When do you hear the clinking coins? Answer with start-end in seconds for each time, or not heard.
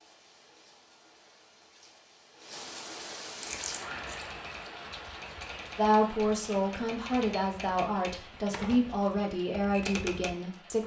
3.4-4.3.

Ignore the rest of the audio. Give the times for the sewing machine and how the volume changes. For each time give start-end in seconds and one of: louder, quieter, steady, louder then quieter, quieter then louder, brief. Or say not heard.
not heard.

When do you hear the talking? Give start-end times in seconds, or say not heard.
5.8-10.8.